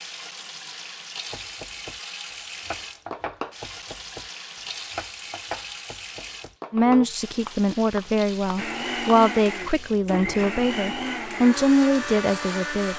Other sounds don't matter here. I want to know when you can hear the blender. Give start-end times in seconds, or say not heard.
8.6-12.9.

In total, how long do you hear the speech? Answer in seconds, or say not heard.
6 s.